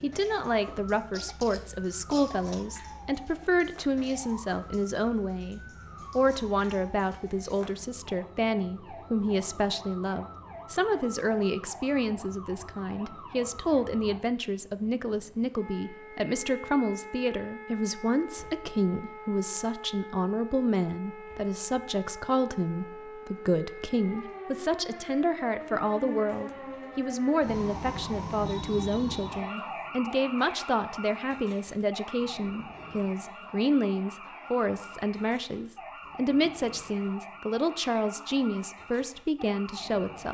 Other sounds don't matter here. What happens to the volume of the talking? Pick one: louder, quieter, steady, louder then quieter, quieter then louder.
steady.